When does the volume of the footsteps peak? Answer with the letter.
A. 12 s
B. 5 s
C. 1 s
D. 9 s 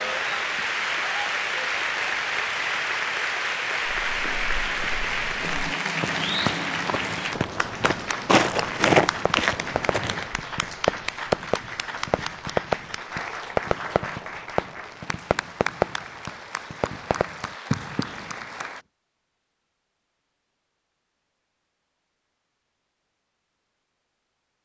D.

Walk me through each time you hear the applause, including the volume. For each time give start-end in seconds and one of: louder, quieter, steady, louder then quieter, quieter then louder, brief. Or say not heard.
0.0-18.9 quieter.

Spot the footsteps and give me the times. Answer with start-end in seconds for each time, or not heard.
3.9-10.3.